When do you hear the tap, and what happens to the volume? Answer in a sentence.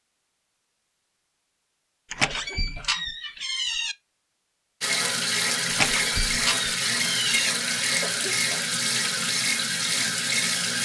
You can hear the tap from 4.8 to 10.8 s, at a steady volume.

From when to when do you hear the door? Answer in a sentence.
You can hear the door from 2.1 to 4.0 s and from 5.7 to 7.5 s.